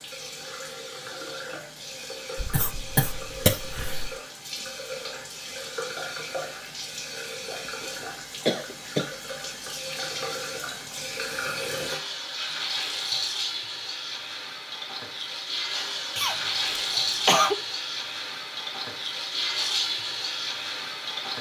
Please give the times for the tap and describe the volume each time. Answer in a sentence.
The tap can be heard from 0.0 to 21.3 s, getting louder.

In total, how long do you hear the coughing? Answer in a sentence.
The coughing can be heard for 4 seconds in total.